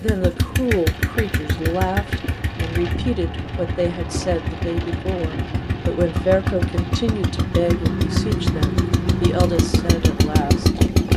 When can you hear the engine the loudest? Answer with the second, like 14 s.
11 s.